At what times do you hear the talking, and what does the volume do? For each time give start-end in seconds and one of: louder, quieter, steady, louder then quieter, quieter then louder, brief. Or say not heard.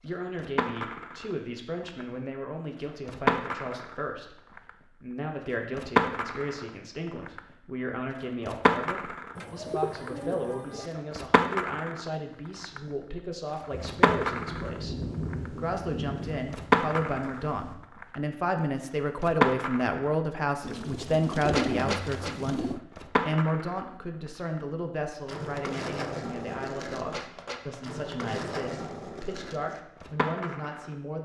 0.0-31.2 louder then quieter.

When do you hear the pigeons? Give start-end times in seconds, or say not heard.
9.3-10.9, 20.6-22.8.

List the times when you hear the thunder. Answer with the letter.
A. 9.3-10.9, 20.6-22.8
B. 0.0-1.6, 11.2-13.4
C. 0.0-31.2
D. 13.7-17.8
D.